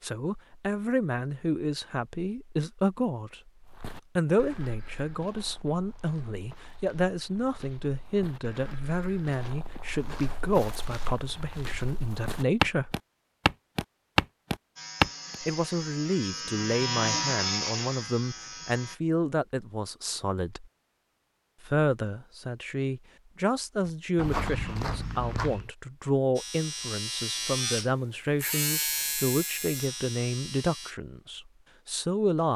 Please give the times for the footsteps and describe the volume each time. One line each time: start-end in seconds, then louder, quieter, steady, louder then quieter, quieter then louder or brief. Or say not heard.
3.6-15.3 louder
23.9-25.7 brief.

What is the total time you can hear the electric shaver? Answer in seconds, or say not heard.
9 s.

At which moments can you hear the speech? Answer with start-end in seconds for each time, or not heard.
0.0-3.5, 4.2-12.9, 15.4-20.6, 21.6-32.5.